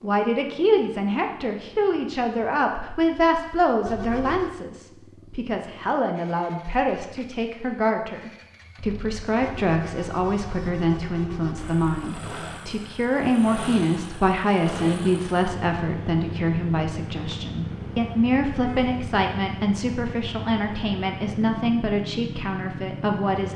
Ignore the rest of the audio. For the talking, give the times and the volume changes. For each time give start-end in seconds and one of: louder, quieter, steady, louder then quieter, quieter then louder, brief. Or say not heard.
0.0-23.5 steady.